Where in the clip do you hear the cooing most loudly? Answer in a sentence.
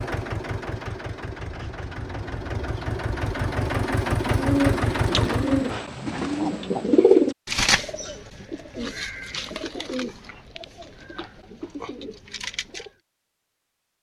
The loudest moment of the cooing is at 7 seconds.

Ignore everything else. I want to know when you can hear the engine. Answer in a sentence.
The engine can be heard from 0.0 to 5.8 s.